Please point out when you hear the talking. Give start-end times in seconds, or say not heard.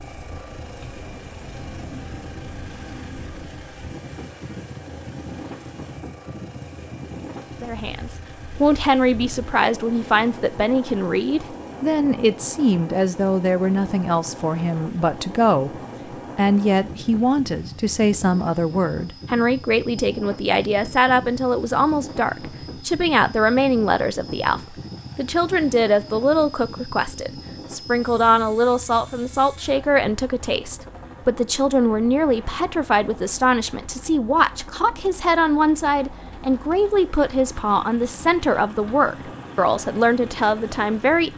7.6-15.7, 16.4-41.3.